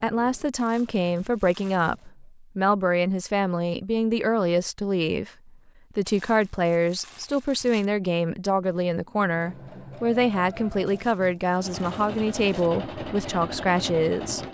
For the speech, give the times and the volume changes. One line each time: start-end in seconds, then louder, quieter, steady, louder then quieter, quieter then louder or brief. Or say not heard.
0.0-14.4 steady.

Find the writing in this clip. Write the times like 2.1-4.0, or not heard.
not heard.